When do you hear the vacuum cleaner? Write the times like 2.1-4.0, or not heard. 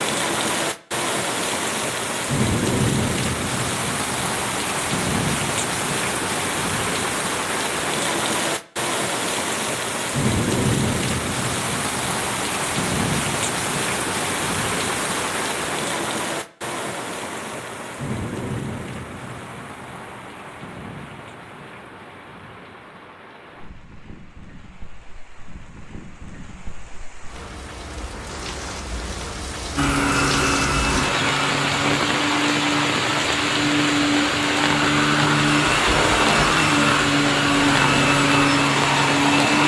29.8-39.6.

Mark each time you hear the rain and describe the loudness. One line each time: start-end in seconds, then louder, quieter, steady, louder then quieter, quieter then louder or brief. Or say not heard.
0.0-39.6 quieter then louder.